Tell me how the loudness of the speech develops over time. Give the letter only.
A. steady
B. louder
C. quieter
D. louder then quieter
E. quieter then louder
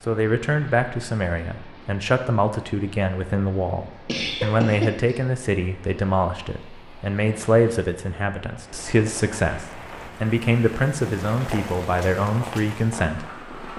A.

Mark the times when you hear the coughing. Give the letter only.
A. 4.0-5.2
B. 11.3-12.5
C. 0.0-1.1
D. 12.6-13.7
A.